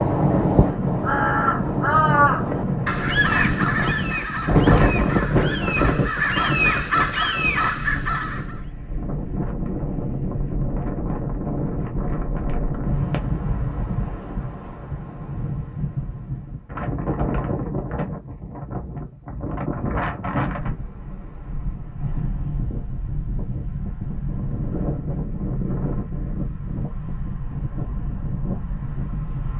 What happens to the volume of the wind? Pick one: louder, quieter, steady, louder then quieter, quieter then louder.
quieter.